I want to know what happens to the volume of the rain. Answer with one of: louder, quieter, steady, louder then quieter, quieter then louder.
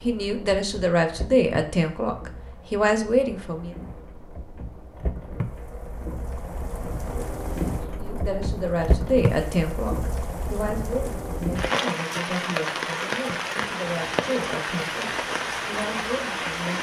louder.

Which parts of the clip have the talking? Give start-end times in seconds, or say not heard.
0.0-3.7, 8.0-16.7.